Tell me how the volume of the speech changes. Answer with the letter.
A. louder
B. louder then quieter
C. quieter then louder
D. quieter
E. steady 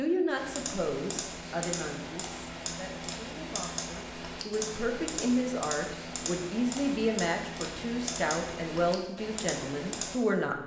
C.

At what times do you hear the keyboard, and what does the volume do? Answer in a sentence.
The keyboard can be heard from 0.3 to 10.2 s, at a steady volume.